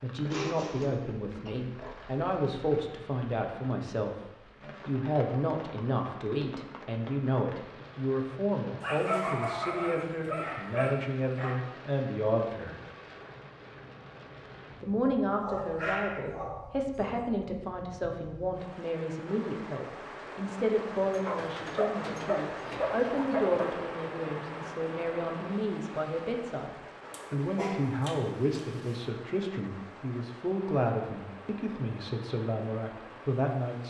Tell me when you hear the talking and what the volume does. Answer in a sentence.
You can hear the talking from 0.0 to 12.8 s, at a steady volume; and from 14.8 to 33.8 s, at a steady volume.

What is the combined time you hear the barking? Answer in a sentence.
You can hear the barking for 11 seconds altogether.